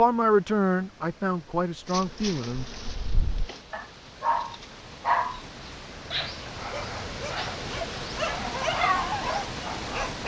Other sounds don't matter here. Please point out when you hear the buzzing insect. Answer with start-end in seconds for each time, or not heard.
1.9-3.6.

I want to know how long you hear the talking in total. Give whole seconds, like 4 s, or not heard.
3 s.